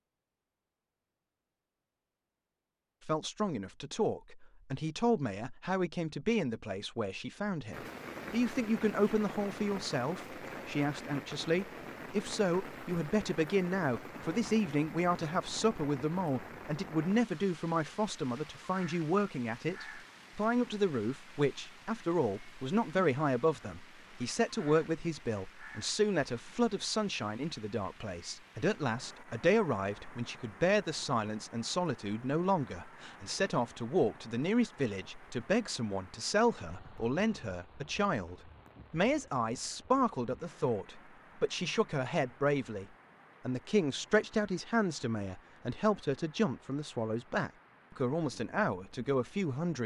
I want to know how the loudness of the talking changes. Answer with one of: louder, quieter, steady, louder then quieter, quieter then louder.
steady.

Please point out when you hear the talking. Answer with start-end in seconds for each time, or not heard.
3.0-42.9, 43.5-49.8.